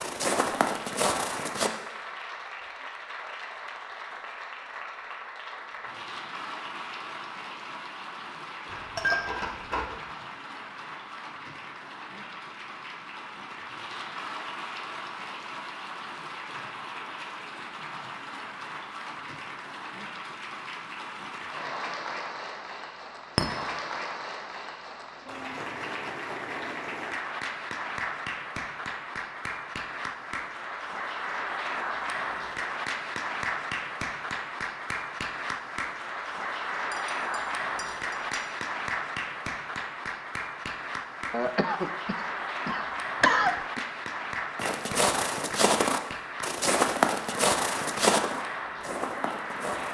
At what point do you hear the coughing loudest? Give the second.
43 s.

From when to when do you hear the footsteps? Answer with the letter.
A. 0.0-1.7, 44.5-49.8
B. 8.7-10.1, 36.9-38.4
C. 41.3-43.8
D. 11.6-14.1
A.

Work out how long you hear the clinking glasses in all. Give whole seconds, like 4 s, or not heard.
3 s.